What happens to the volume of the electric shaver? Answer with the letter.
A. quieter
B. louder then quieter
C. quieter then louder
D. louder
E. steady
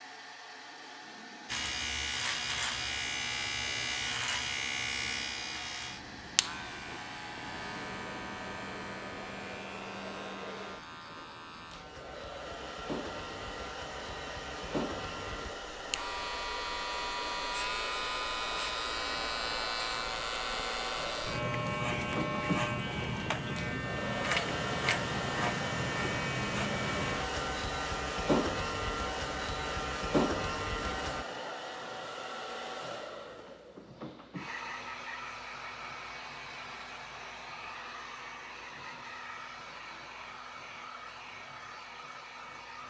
C.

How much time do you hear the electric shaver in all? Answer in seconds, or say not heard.
30 s.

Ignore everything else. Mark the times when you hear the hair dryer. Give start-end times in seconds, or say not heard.
0.0-42.8.